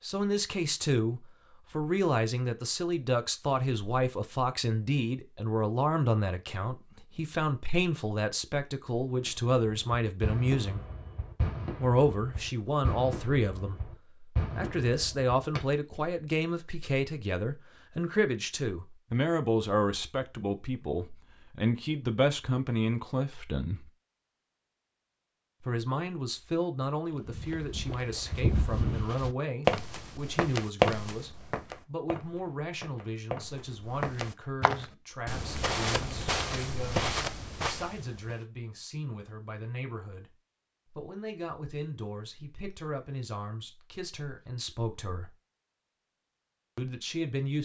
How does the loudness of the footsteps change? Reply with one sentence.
The volume of the footsteps goes down, then up.